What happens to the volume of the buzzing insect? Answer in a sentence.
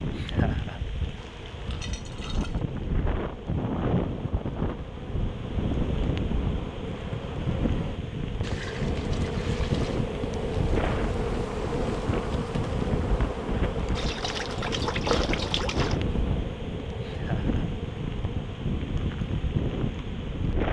The loudness of the buzzing insect goes up, then down.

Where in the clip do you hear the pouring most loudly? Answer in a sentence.
The loudest moment of the pouring is at 15 seconds.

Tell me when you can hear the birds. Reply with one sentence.
The birds can't be heard in this clip.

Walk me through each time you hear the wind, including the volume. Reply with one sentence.
The wind can be heard from 0.0 to 20.6 s, at a steady volume.